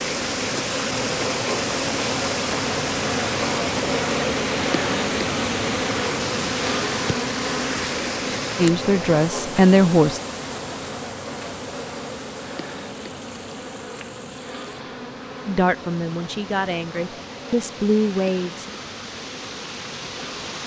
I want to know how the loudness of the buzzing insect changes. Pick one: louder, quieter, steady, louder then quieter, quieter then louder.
quieter.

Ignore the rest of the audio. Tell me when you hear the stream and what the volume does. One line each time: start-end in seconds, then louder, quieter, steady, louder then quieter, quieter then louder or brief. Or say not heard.
0.0-20.6 quieter then louder.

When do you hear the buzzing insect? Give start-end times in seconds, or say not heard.
0.0-20.6.